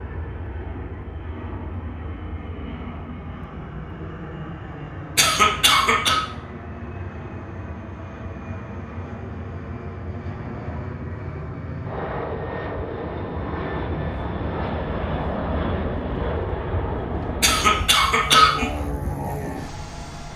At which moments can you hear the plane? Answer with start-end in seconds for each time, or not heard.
0.0-20.3.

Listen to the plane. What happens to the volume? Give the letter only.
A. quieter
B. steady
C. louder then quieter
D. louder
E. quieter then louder
D.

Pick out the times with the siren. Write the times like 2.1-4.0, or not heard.
not heard.